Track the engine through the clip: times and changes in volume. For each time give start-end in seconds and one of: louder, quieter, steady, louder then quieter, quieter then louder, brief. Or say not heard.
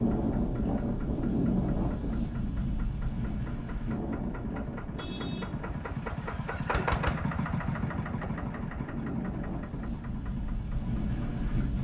0.0-11.7 louder then quieter.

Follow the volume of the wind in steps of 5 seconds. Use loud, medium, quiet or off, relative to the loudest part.
loud, medium, loud.